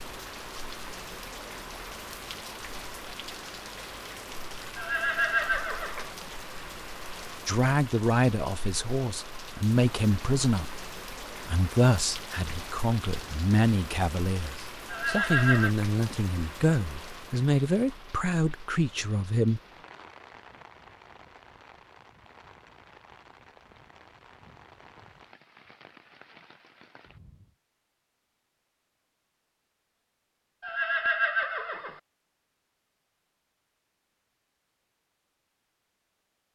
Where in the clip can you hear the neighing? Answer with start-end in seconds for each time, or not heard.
4.8-6.1, 14.9-15.8, 30.6-32.0.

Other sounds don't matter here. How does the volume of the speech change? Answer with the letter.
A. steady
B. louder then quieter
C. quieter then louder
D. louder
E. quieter
A.